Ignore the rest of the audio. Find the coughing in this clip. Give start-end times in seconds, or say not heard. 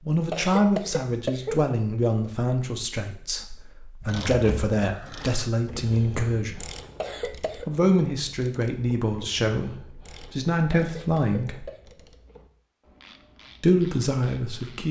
0.3-1.6, 7.0-7.7, 10.7-11.8.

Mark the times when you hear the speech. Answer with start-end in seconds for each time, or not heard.
0.1-6.6, 7.5-11.7, 13.6-14.8.